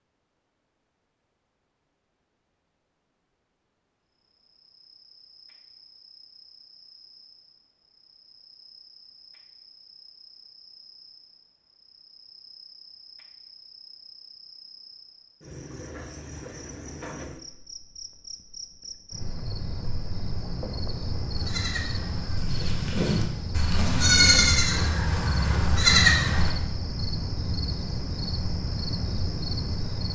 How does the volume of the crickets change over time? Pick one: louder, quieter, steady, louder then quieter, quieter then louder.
louder.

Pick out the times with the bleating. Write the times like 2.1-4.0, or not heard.
21.4-26.5.